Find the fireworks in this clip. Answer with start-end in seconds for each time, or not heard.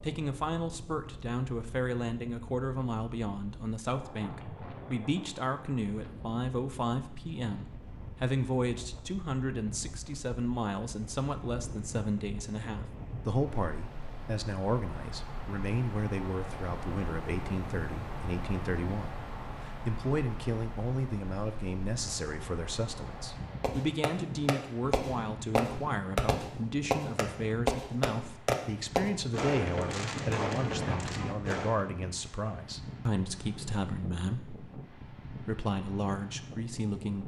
23.6-31.9.